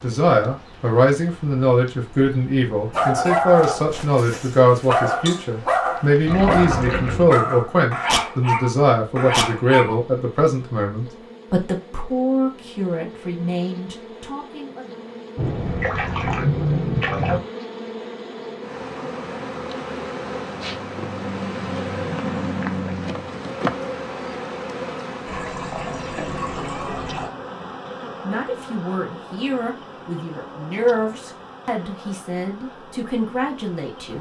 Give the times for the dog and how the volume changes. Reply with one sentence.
The dog can be heard from 2.9 to 9.9 s, at a steady volume.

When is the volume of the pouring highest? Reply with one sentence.
The volume of the pouring peaks at 17 seconds.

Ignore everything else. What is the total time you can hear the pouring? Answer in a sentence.
You can hear the pouring for 5 seconds altogether.